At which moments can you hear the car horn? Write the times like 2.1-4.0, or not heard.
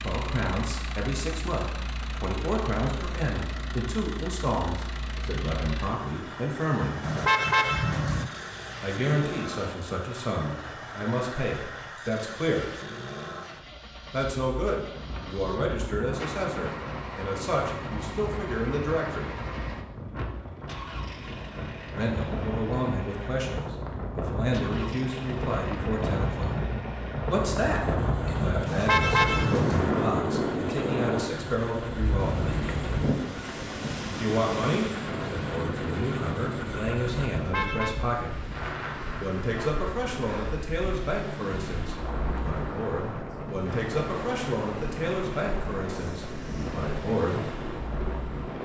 7.0-8.3, 28.6-29.9, 37.3-38.0.